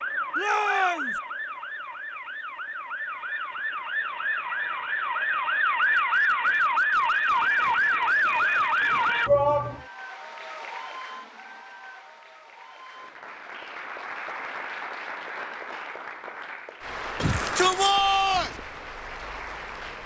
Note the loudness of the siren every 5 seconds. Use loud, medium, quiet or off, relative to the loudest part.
medium, loud, off, off.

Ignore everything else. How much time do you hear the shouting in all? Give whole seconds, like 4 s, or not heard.
3 s.